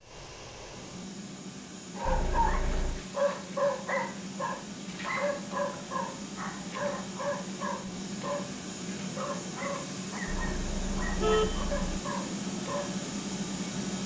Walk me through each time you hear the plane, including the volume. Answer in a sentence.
The plane can be heard from 0.0 to 14.0 s, getting louder.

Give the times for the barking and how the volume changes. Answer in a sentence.
The barking can be heard from 1.9 to 13.1 s, getting quieter.